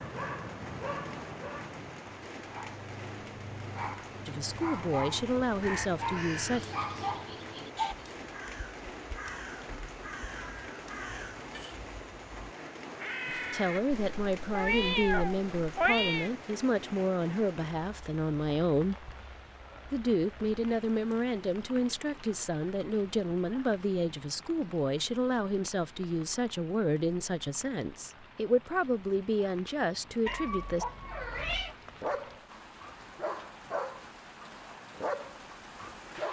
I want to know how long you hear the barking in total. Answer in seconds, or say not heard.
13 s.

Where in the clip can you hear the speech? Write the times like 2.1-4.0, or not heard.
4.2-6.7, 13.2-18.9, 19.9-30.9.